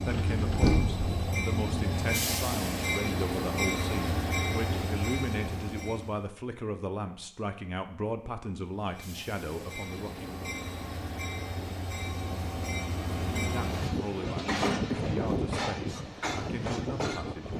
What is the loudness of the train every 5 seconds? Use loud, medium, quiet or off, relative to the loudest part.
loud, medium, loud, loud.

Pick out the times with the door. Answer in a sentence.
The door can be heard from 0.1 to 1.2 s.